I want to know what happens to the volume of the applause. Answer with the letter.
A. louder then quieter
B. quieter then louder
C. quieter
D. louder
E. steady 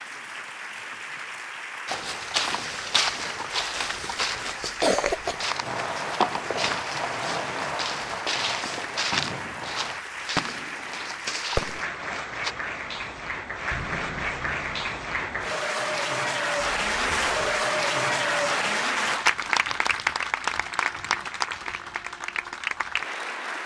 D.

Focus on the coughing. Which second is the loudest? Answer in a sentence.
The loudest moment of the coughing is at 5 seconds.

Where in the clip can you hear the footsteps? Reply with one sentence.
The footsteps can be heard from 1.9 to 12.6 s.